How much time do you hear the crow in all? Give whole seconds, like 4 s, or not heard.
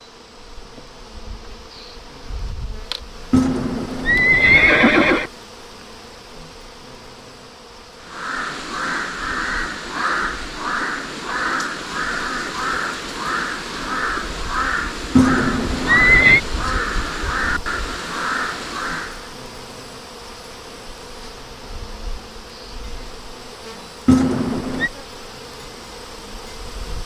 11 s.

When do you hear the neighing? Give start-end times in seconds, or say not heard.
3.3-5.3, 15.2-16.4, 24.1-24.9.